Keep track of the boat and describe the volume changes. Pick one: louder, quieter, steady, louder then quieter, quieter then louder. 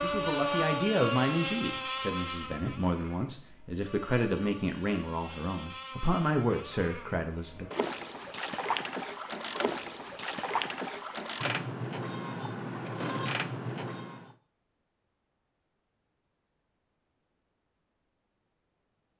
quieter then louder.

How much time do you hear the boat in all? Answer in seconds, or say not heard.
14 s.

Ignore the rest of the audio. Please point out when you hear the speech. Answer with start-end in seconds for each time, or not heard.
0.0-7.7.